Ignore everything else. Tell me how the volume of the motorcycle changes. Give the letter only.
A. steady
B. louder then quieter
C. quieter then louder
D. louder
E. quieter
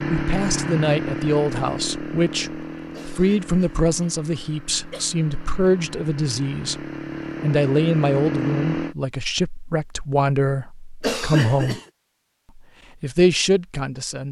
C.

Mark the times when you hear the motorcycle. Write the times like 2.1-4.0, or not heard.
0.0-8.9.